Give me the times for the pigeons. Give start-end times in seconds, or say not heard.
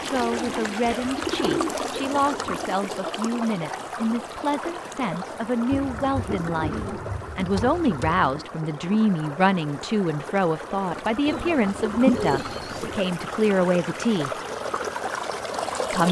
0.1-2.7, 5.7-8.4, 11.2-13.0.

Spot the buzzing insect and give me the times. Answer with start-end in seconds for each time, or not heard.
not heard.